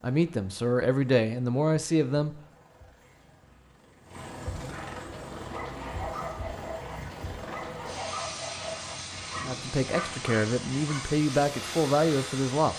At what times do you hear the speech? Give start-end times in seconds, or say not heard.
0.0-2.4, 9.4-12.7.